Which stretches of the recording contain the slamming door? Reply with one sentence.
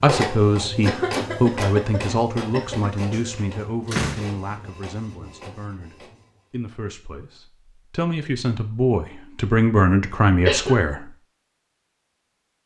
You can hear the slamming door from 3.1 to 4.3 s.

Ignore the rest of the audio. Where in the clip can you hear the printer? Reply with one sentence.
You can hear the printer from 0.0 to 6.5 s.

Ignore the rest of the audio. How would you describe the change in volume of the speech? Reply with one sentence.
The loudness of the speech goes down, then up.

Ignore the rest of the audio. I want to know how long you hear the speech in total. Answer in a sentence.
The speech can be heard for 11 seconds in total.